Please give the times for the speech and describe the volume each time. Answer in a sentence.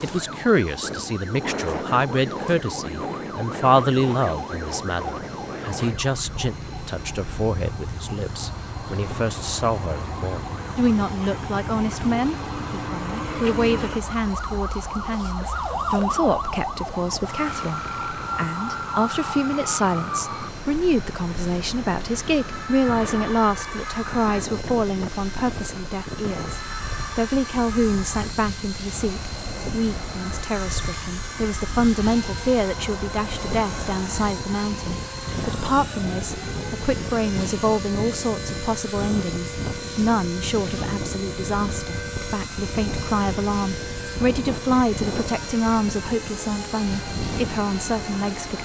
The speech can be heard from 0.0 to 48.5 s, at a steady volume.